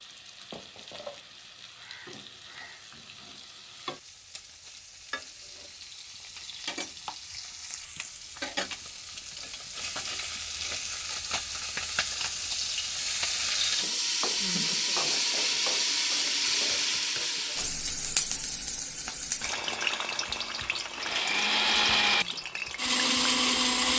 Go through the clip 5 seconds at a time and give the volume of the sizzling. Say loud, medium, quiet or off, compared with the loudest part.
quiet, medium, loud, loud, medium.